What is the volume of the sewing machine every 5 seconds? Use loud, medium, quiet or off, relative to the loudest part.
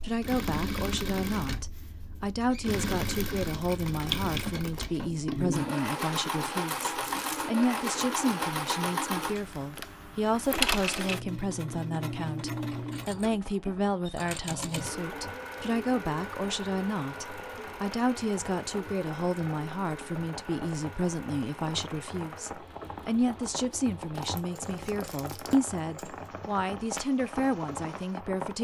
loud, loud, loud, medium, quiet, quiet.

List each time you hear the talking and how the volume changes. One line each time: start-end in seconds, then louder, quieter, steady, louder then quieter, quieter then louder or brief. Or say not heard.
0.0-28.5 steady.